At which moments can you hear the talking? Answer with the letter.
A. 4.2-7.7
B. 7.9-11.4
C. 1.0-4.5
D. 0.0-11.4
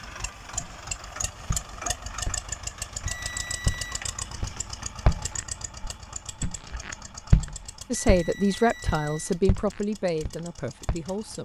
B.